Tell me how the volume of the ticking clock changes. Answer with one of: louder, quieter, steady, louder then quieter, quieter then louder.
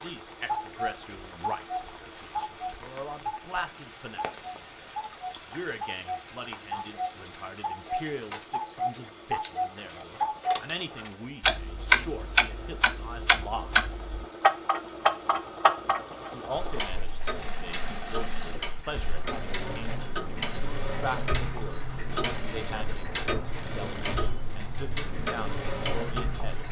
louder then quieter.